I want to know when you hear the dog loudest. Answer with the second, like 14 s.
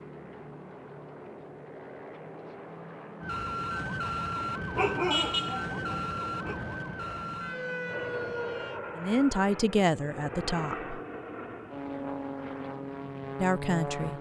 5 s.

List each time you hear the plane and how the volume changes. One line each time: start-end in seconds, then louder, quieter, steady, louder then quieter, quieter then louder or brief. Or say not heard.
0.0-14.1 louder.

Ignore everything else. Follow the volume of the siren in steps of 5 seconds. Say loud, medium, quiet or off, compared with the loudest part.
loud, loud, off.